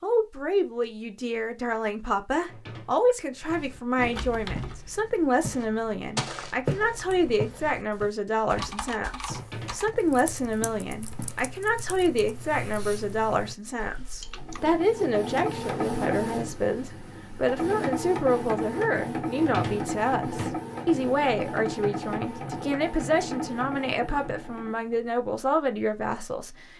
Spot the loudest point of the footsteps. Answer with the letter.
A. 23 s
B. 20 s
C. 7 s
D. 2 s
C.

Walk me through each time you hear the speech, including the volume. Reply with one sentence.
The speech can be heard from 0.0 to 26.6 s, at a steady volume.